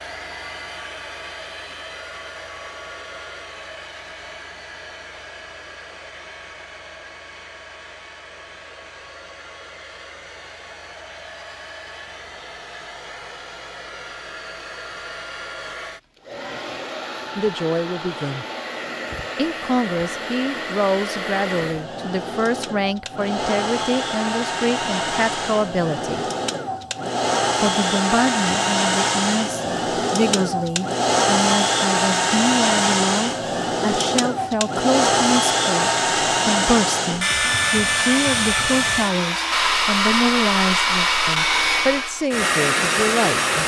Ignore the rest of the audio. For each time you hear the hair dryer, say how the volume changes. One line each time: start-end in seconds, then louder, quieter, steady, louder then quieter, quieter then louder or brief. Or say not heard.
0.0-43.6 louder.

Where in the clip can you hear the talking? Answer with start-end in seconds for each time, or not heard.
17.4-18.4, 19.4-26.2, 27.6-43.6.